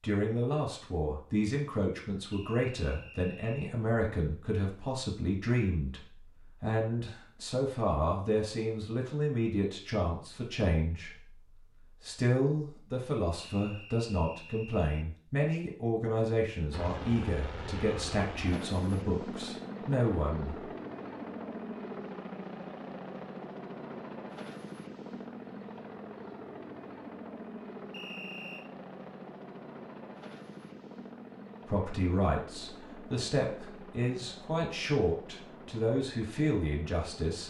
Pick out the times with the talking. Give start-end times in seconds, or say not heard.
0.0-20.6, 31.6-37.4.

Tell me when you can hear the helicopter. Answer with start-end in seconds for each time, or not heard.
16.7-37.4.